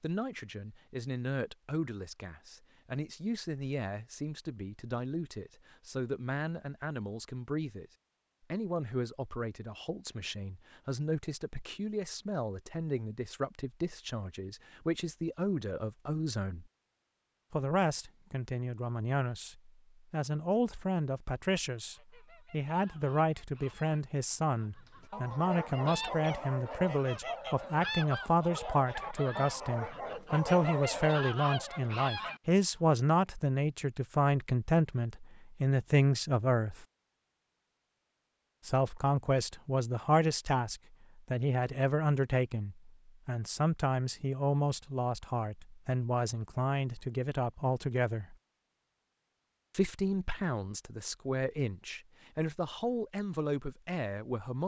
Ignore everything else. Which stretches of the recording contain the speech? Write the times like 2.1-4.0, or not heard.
0.0-7.9, 8.5-16.6, 17.5-36.9, 38.6-48.4, 49.7-54.6.